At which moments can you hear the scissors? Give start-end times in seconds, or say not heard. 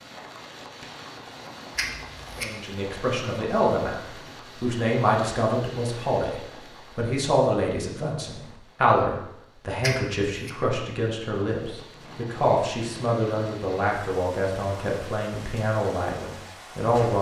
1.8-2.5, 9.8-10.5.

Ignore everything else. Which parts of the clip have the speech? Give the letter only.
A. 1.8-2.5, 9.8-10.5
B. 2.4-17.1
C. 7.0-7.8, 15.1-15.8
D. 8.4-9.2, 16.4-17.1
B.